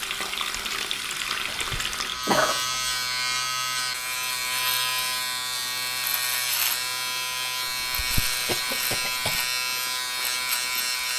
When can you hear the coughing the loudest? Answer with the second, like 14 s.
2 s.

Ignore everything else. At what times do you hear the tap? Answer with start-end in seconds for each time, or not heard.
0.0-11.1.